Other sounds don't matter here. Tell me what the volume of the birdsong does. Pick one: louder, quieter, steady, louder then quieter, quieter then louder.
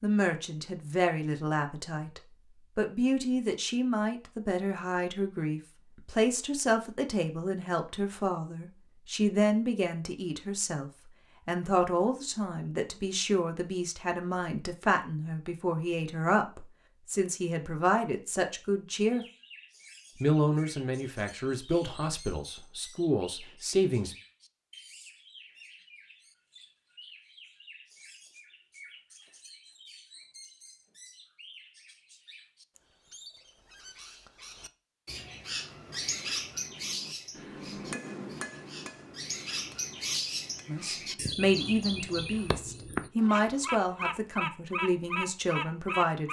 louder.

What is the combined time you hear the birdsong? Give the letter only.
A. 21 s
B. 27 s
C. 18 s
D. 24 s
B.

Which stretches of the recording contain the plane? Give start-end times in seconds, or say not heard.
not heard.